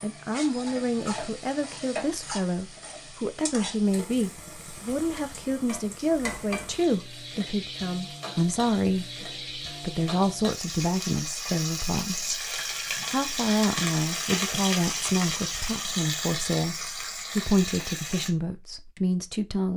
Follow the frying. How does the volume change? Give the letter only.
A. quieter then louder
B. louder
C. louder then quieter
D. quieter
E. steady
B.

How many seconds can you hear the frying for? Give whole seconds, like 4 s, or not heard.
18 s.